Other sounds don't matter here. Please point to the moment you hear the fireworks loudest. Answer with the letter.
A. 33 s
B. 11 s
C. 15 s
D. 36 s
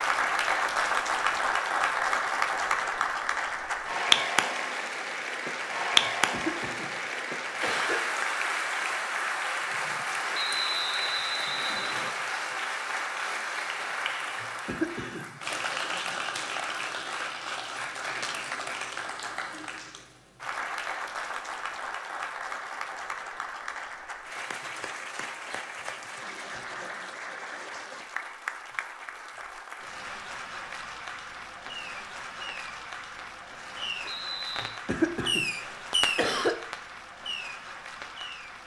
D.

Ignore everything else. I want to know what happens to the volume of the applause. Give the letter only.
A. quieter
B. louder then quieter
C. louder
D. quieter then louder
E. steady
A.